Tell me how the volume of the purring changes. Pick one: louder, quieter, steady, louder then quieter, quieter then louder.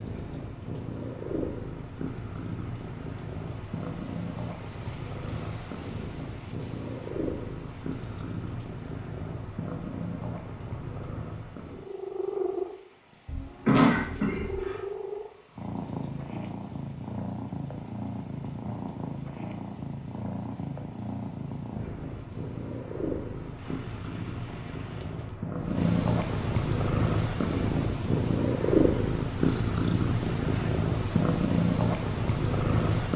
louder.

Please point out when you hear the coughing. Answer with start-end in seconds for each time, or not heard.
13.2-14.8.